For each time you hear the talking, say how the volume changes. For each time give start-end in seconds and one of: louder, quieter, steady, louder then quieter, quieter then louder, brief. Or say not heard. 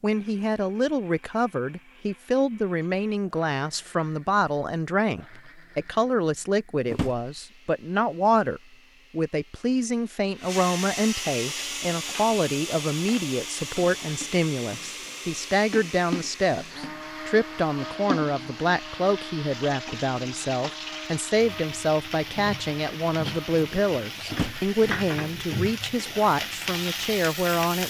0.0-27.8 steady.